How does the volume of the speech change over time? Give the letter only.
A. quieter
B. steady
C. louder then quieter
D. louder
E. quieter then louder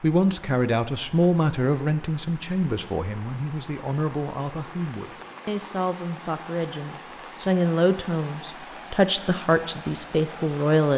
E.